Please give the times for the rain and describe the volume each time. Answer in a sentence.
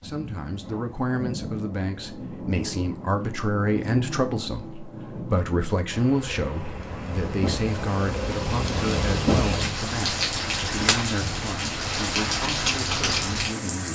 The rain can be heard from 0.0 to 13.9 s, getting louder.